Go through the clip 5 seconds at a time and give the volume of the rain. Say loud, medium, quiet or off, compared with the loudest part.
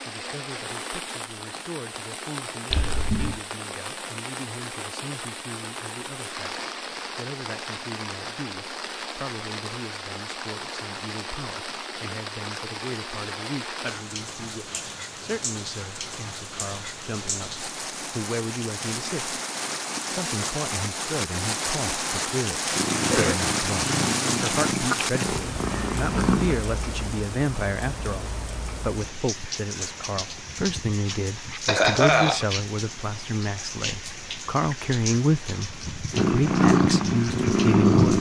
medium, medium, medium, medium, loud, medium, medium, medium.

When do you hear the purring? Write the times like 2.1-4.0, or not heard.
22.7-26.6, 36.1-38.1.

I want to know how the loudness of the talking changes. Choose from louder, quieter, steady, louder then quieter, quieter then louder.
louder.